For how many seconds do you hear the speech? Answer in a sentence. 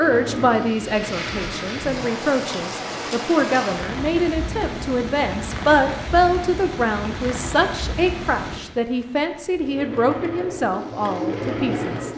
You can hear the speech for 12 seconds altogether.